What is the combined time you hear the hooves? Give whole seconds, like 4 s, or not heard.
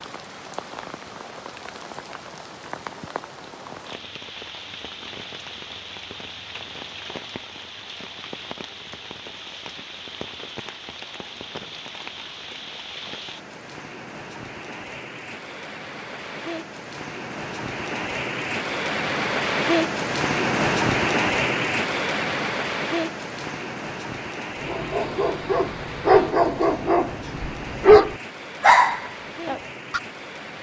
not heard.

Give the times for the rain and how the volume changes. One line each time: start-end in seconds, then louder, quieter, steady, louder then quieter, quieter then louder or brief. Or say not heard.
0.0-30.5 louder then quieter.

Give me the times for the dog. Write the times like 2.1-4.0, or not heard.
24.6-30.0.